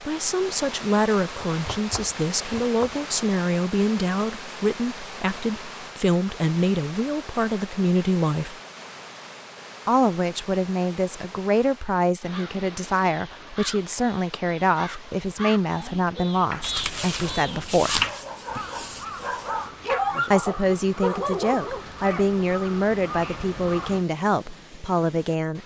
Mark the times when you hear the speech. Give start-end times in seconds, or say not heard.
0.1-8.6, 9.8-18.1, 20.3-25.6.